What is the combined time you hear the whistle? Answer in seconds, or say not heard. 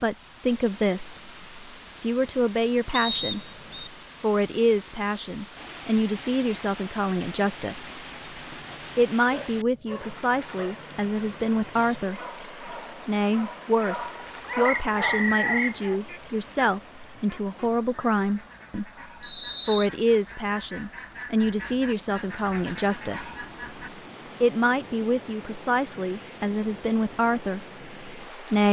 3 s.